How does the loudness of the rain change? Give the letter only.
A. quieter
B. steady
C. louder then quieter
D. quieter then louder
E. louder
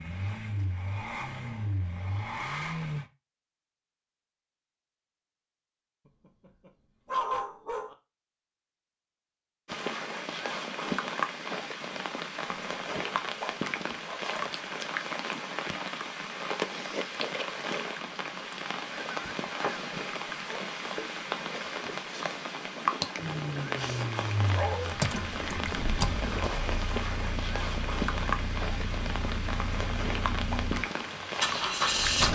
B.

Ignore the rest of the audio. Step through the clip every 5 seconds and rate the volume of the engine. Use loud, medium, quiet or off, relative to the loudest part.
medium, off, off, off, medium, medium, loud.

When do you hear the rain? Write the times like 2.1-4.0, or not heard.
9.7-32.2.